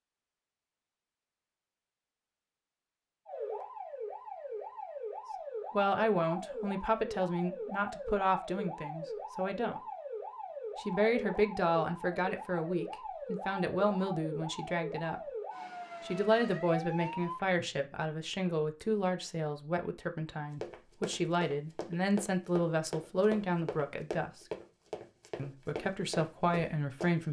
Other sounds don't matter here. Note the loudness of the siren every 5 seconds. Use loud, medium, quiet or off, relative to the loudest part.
loud, loud, loud, loud, off, off.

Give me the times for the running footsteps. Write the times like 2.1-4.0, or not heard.
20.6-27.2.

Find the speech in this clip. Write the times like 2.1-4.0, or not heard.
5.7-9.8, 10.8-15.2, 16.0-24.4, 25.4-27.2.